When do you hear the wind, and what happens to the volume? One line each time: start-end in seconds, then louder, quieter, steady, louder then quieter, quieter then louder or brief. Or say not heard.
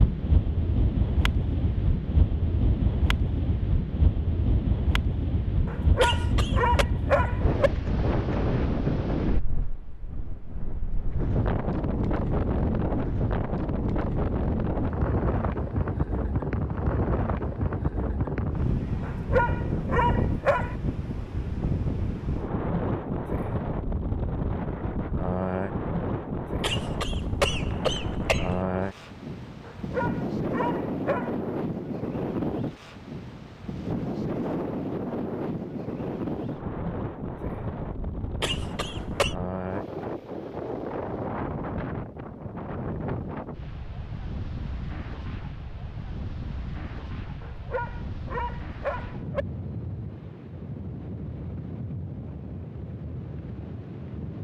0.0-54.3 quieter.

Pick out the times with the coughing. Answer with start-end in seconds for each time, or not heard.
6.0-6.8, 26.6-28.6, 38.4-39.4.